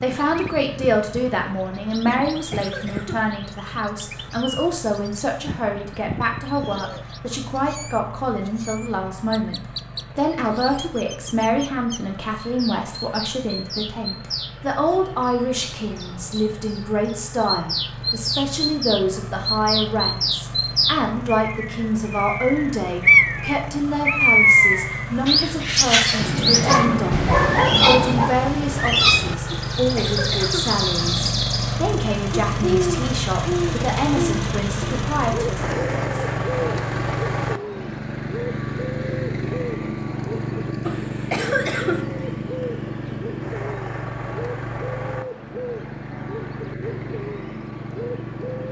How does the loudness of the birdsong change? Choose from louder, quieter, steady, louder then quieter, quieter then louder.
louder then quieter.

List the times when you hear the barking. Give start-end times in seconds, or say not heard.
26.1-28.4.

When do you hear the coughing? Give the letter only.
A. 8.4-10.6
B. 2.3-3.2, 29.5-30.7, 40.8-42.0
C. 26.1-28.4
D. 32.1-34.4
B.